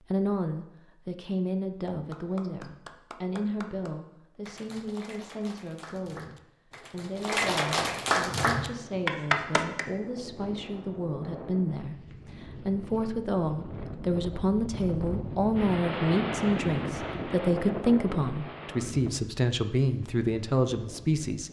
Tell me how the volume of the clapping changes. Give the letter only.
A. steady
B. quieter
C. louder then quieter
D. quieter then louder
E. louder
E.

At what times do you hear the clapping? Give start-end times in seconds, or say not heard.
1.9-9.8.